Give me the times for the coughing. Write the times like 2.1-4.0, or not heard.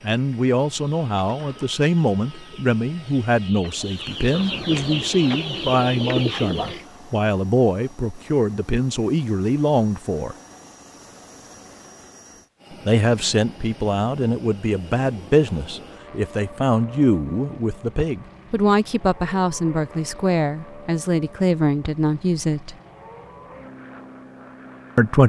not heard.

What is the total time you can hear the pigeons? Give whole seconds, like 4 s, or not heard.
6 s.